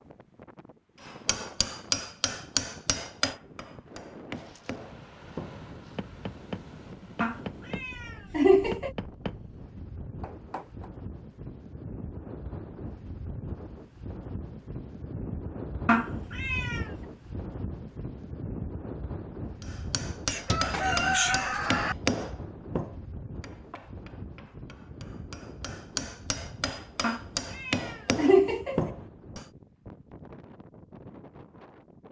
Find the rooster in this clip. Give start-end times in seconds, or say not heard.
20.2-21.9.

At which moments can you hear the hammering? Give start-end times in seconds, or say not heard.
1.0-10.9, 19.6-29.4.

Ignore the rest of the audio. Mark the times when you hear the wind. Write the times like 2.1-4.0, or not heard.
0.0-32.0.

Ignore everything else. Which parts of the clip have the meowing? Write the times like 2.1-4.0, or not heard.
7.2-8.9, 15.8-16.9, 27.0-28.9.